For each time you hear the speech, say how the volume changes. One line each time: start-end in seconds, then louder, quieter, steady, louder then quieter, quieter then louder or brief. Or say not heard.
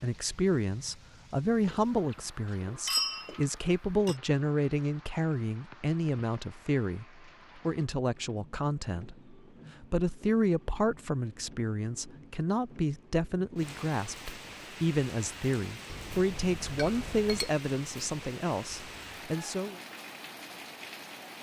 0.0-19.8 steady.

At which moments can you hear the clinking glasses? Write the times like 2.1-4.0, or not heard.
1.6-4.2, 15.9-17.6.